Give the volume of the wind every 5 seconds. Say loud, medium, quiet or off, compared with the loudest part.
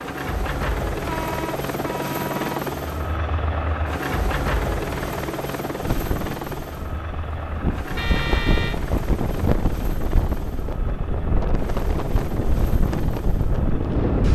off, loud, loud.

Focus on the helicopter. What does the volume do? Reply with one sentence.
The loudness of the helicopter goes down.